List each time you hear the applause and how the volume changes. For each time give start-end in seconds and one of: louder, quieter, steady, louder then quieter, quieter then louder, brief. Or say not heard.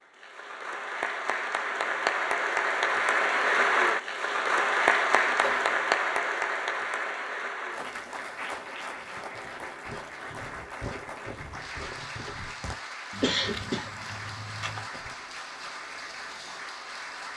0.0-17.3 quieter.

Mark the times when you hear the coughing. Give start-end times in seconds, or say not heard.
5.2-5.8, 13.2-13.9.